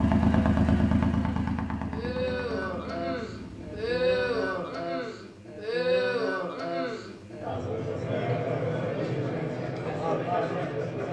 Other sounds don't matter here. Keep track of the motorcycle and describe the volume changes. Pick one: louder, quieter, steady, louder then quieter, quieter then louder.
quieter.